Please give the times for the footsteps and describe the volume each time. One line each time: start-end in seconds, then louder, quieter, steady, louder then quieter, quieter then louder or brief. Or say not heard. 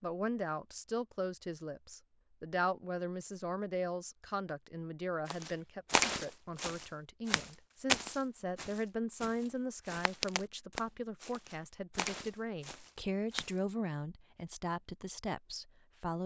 5.2-13.6 quieter then louder.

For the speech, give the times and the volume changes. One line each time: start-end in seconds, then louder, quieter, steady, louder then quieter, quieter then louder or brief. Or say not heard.
0.0-16.2 steady.